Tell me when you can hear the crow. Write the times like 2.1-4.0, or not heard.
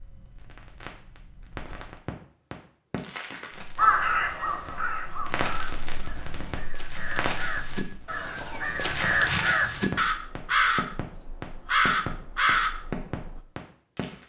3.8-13.4.